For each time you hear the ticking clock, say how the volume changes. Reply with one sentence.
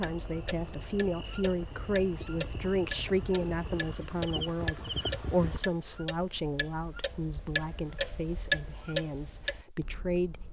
The ticking clock can be heard from 0.0 to 10.4 s, getting louder.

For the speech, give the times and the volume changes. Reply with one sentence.
You can hear the speech from 0.0 to 10.4 s, getting quieter.